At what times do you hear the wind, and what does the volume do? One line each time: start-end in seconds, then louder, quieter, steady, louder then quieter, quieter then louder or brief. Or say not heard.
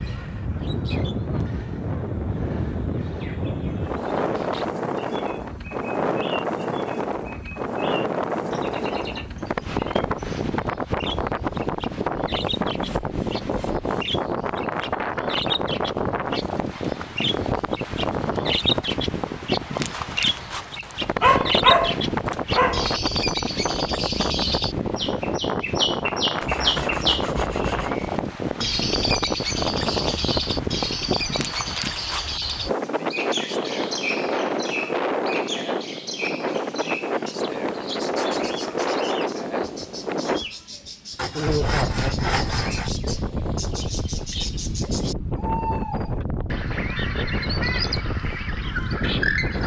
0.0-49.6 steady.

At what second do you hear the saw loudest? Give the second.
42 s.